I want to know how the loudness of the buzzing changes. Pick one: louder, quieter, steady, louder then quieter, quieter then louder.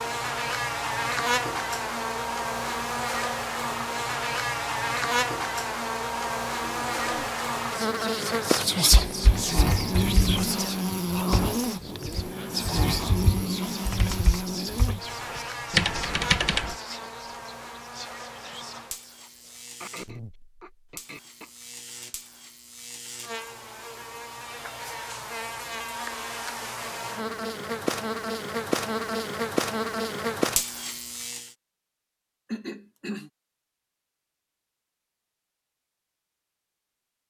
quieter then louder.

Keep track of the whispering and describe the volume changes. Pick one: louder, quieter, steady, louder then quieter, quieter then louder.
quieter.